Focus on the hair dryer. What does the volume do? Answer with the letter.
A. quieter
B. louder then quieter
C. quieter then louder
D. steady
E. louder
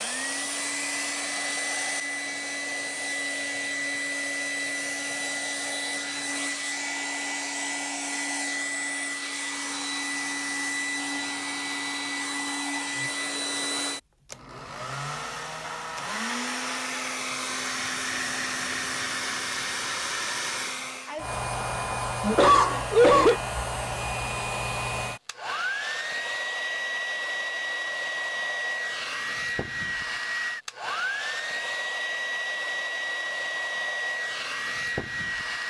D.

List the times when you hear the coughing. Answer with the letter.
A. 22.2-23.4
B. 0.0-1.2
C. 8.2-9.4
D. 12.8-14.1
A.